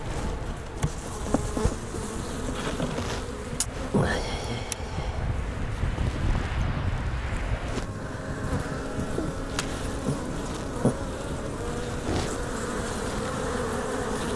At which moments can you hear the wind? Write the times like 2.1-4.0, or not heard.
0.0-14.3.